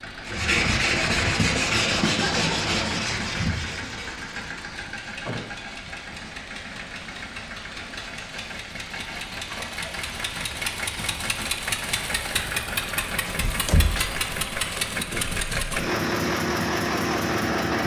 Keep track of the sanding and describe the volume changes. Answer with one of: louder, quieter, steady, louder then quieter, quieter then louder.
quieter.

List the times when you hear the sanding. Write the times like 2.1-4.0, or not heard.
0.2-11.2.